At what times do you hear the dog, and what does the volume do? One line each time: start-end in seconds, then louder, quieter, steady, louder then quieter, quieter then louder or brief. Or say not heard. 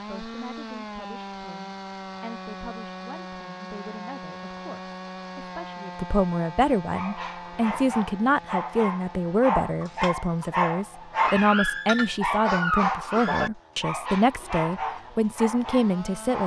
6.9-16.4 louder then quieter.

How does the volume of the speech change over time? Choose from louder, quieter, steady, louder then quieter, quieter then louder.
louder.